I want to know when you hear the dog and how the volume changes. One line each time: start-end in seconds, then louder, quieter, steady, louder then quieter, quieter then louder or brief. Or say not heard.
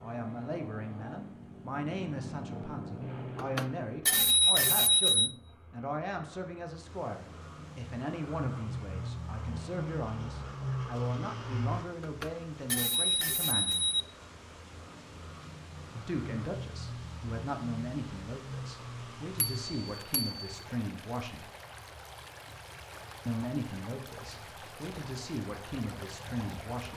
not heard.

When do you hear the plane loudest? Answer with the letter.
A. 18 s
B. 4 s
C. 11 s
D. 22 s
C.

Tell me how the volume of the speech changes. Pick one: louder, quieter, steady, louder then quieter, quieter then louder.
steady.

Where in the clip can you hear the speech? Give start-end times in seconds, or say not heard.
0.0-13.8, 15.9-21.4, 23.2-26.9.